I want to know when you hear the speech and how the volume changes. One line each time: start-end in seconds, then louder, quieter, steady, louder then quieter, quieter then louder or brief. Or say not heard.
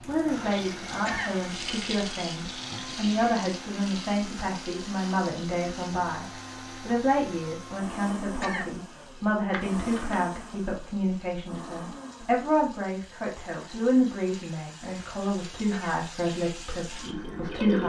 0.1-17.8 steady.